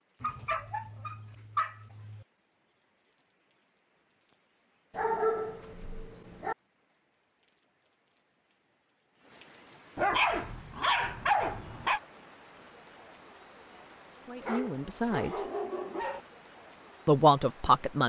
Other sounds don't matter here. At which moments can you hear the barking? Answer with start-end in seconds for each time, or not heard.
0.2-2.2, 5.0-6.5, 9.9-12.0, 14.4-16.2.